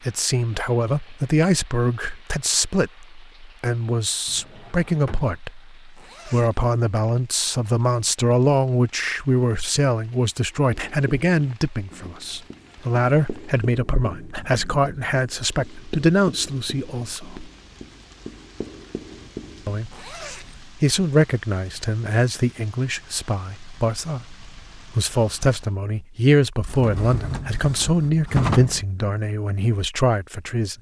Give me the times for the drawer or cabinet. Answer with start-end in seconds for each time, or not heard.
4.2-5.4, 26.6-28.9.